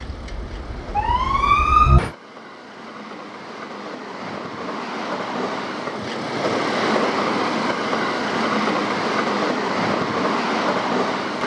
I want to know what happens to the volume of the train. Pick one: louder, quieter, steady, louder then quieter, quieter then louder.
louder.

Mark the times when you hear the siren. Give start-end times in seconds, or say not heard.
0.0-2.1.